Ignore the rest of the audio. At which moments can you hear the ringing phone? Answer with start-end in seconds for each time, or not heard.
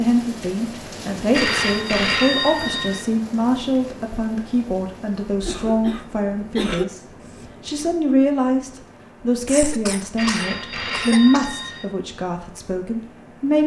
1.3-3.0, 10.2-11.8.